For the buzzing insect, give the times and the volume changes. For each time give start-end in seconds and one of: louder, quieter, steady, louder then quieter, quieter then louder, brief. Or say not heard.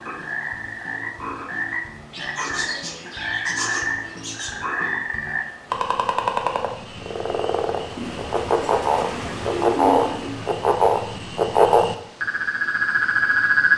not heard.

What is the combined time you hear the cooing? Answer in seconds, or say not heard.
5 s.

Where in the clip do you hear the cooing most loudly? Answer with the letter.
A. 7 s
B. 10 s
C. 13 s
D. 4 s
B.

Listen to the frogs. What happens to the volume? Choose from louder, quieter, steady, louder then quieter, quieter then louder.
louder.